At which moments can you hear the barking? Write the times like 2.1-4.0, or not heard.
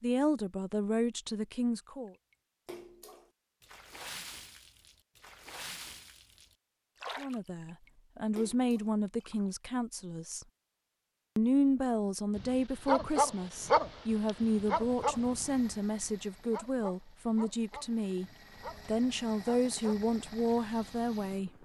12.3-20.0.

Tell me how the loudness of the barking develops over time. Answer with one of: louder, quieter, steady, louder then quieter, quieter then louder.
quieter.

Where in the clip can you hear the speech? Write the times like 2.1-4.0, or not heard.
0.0-2.1, 7.2-10.4, 11.3-21.5.